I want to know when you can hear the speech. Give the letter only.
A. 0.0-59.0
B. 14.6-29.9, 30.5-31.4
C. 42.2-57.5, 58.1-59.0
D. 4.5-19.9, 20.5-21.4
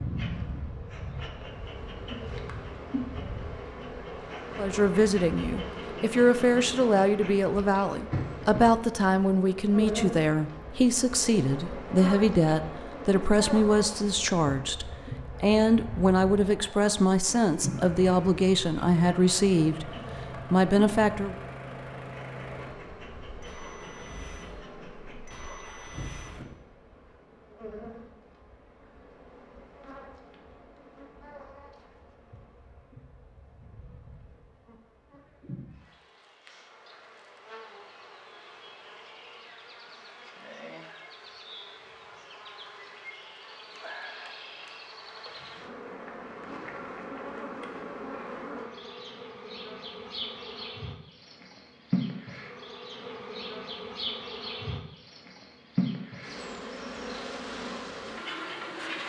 D.